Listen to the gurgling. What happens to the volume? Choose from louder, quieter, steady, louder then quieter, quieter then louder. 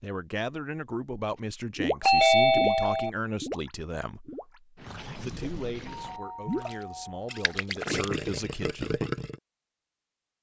quieter then louder.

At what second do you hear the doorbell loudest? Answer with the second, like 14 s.
2 s.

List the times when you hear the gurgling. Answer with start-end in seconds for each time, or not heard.
1.8-9.4.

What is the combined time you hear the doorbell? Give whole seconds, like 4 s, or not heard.
3 s.